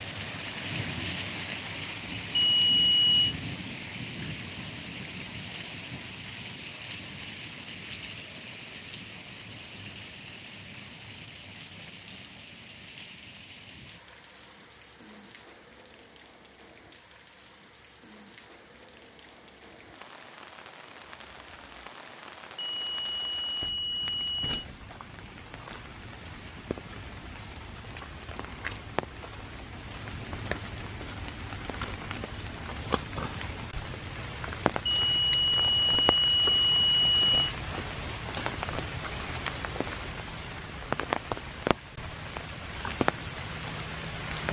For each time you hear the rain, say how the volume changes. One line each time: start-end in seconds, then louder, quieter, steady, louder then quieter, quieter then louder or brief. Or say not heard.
0.0-44.4 quieter then louder.